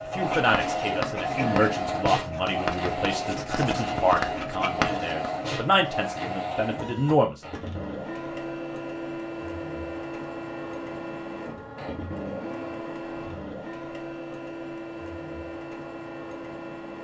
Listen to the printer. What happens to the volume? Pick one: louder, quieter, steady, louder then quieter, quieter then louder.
quieter.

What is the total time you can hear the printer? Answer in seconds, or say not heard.
17 s.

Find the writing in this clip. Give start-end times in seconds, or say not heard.
0.2-5.5.